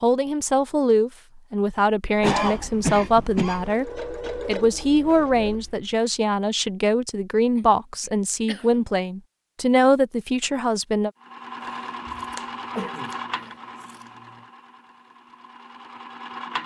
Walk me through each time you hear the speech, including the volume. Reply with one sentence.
You can hear the speech from 0.0 to 11.1 s, at a steady volume.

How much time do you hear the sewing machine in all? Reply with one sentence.
You can hear the sewing machine for 8 seconds altogether.